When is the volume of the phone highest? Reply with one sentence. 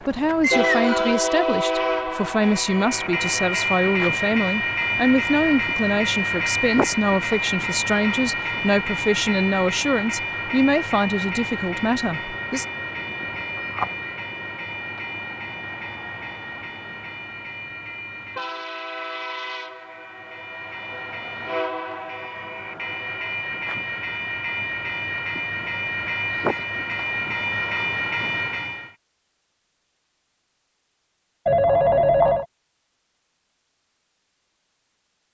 The volume of the phone peaks at 32 seconds.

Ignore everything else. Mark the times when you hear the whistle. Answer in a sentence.
You can hear the whistle from 0.4 to 1.1 s.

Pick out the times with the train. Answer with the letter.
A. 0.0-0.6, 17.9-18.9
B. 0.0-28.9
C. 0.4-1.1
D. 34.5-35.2
B.